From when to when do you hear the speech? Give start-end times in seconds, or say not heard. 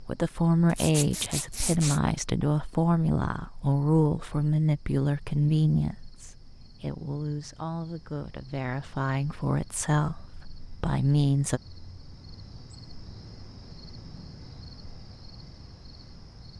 0.0-11.6.